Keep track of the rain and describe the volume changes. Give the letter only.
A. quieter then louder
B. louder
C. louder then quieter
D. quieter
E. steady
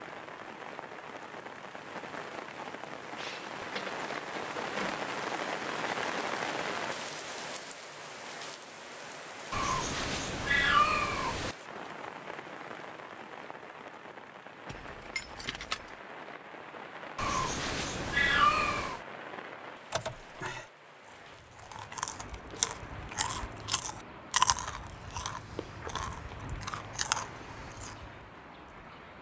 D.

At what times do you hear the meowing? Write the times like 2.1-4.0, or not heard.
9.5-11.6, 17.1-19.0.